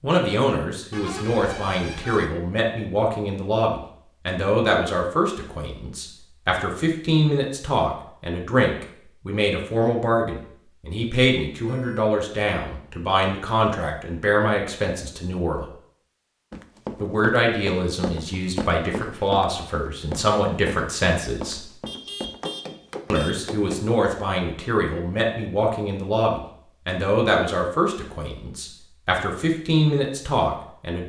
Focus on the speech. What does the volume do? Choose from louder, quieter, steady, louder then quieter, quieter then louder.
steady.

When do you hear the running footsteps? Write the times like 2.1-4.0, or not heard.
16.5-23.8.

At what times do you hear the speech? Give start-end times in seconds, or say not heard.
0.0-15.7, 17.0-21.7, 23.1-31.0.